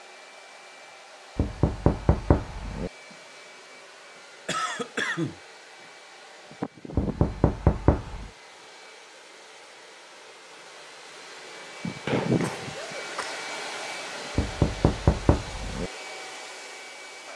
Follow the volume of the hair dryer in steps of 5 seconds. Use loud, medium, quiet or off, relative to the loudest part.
quiet, medium, loud, medium.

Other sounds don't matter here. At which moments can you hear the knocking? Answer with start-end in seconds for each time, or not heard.
1.4-2.9, 7.0-8.3, 14.3-15.9.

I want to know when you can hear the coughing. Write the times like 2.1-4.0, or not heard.
4.5-5.4, 12.1-13.4.